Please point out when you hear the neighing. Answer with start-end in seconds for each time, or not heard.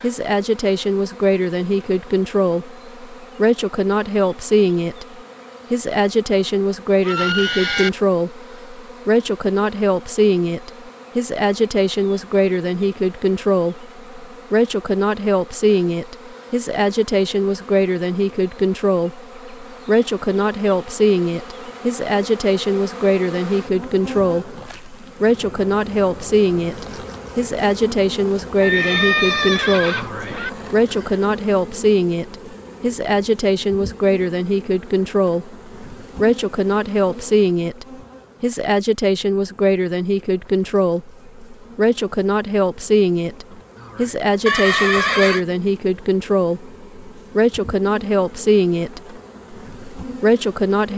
7.0-7.9, 28.6-30.5, 44.5-45.4.